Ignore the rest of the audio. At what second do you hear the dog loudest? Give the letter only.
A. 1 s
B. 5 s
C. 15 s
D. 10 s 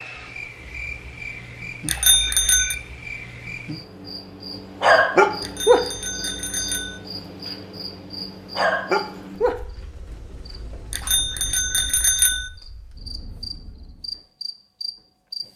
B.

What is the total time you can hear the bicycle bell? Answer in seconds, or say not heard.
4 s.